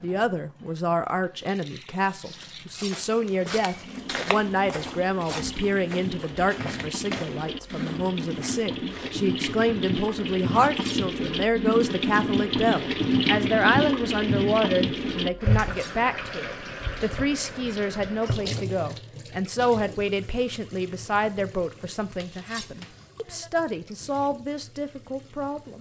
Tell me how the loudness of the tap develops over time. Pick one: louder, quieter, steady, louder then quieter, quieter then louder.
louder then quieter.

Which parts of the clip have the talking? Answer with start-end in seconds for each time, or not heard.
0.0-25.7.